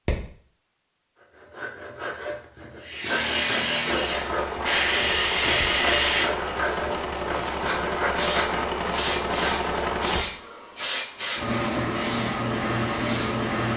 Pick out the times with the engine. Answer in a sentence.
You can hear the engine from 3.1 to 10.2 s.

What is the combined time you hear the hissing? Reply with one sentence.
The hissing can be heard for 11 seconds in total.